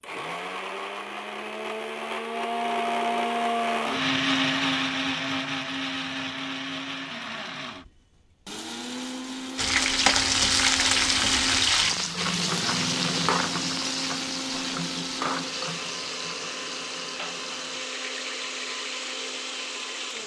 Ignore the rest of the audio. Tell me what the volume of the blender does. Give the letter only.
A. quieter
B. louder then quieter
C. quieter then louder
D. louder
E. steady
A.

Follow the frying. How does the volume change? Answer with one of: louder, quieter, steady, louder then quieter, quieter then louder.
quieter.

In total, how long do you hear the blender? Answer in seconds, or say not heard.
20 s.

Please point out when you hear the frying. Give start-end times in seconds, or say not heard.
9.6-20.2.